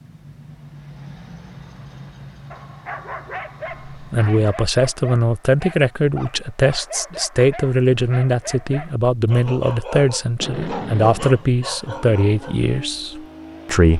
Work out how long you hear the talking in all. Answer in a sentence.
The talking can be heard for 10 seconds in total.